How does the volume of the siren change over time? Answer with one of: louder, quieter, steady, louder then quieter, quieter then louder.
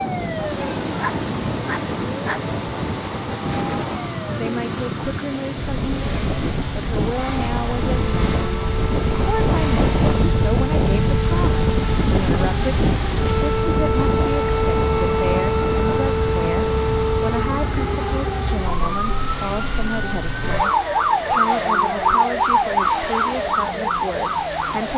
louder.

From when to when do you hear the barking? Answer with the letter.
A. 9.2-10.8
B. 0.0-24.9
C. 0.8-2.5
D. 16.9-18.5
C.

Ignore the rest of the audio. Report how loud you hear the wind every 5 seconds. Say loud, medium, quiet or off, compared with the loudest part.
medium, loud, loud, medium, off.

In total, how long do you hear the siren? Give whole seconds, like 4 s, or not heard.
25 s.